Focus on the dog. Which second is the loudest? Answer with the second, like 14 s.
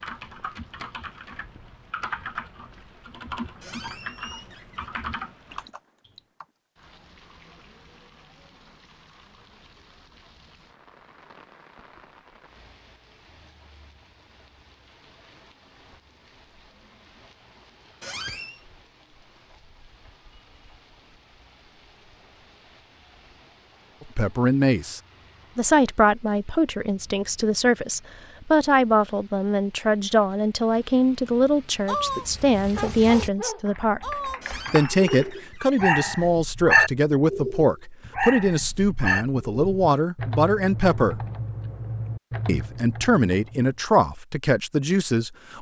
37 s.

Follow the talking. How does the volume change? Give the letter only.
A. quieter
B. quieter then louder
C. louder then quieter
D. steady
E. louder
D.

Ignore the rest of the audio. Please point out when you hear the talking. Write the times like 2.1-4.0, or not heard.
24.1-41.2, 42.5-45.5.